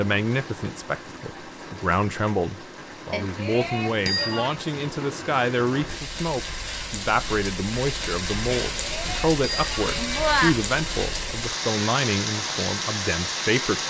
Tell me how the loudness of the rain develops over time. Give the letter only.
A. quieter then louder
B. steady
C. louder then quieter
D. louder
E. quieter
D.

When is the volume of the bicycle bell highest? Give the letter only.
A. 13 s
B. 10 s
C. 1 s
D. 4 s
B.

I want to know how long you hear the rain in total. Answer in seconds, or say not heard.
14 s.